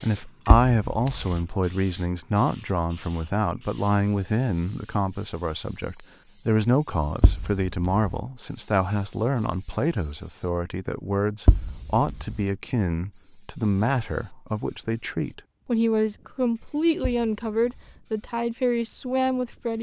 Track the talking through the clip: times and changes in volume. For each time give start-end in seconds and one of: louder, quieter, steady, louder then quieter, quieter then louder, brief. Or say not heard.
0.0-19.7 steady.